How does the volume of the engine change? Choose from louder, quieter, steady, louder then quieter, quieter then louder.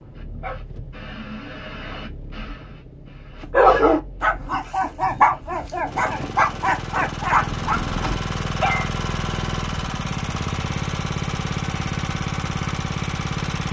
louder.